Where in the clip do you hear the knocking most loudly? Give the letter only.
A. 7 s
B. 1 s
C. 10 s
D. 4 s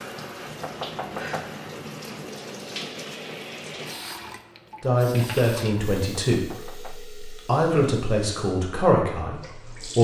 B.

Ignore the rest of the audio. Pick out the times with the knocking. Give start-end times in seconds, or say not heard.
0.6-1.6, 6.3-7.0.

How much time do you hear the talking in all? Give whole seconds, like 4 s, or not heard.
5 s.